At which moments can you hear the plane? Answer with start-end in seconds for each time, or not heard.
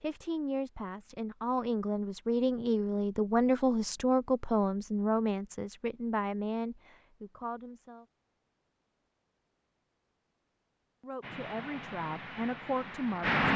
11.2-13.5.